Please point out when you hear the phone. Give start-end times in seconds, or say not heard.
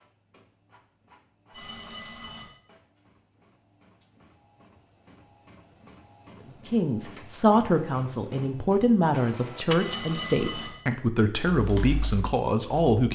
1.5-2.5, 9.8-10.8.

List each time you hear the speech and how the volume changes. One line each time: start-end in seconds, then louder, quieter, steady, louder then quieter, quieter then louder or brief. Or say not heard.
6.7-13.1 steady.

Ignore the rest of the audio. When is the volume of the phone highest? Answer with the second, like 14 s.
10 s.